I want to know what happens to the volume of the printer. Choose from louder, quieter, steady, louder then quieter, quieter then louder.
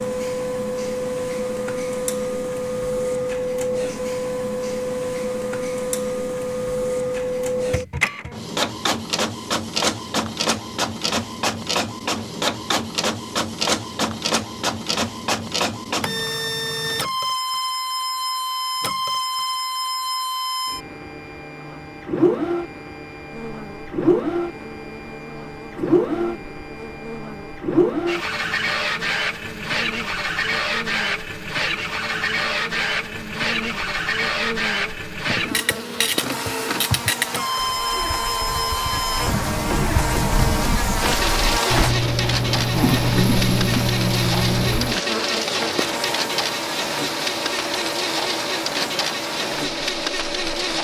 steady.